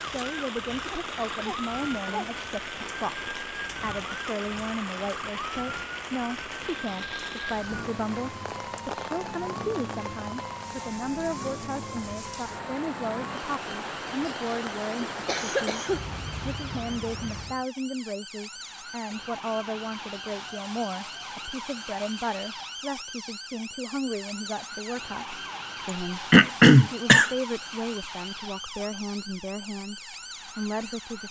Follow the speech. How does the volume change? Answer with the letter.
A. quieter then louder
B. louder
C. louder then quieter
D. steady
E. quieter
D.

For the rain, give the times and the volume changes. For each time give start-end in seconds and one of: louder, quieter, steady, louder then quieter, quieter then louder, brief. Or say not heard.
0.0-17.6 steady.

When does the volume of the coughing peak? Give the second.
27 s.